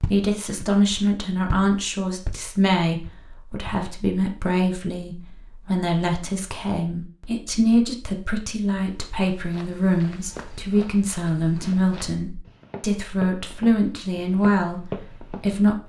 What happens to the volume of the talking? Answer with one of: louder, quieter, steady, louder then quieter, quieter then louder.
steady.